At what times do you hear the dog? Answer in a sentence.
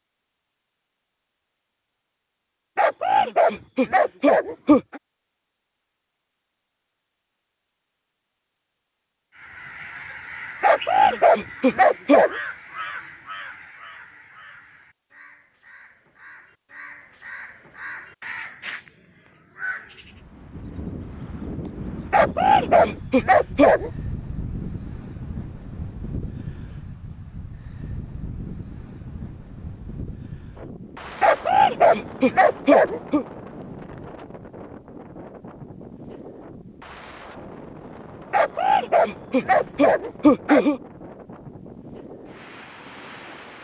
You can hear the dog from 2.8 to 5.0 s, from 10.6 to 12.3 s, from 22.1 to 23.9 s, from 31.2 to 33.2 s and from 38.3 to 40.8 s.